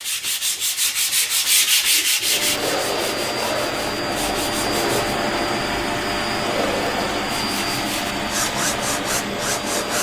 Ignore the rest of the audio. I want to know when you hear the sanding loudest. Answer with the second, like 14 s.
2 s.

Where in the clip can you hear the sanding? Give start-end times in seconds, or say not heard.
0.0-5.0, 7.3-9.9.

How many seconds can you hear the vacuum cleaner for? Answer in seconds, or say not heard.
8 s.